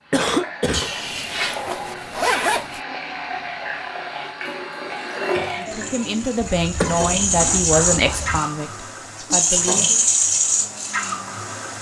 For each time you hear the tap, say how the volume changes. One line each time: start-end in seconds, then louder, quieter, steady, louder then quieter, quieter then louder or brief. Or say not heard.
0.0-11.7 louder.